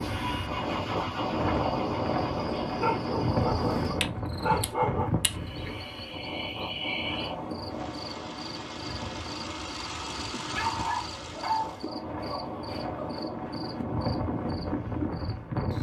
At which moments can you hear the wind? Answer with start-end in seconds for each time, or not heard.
0.0-15.7.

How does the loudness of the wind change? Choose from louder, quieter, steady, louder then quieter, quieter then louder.
quieter then louder.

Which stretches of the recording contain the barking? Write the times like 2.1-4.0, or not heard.
2.6-5.1, 10.5-13.2.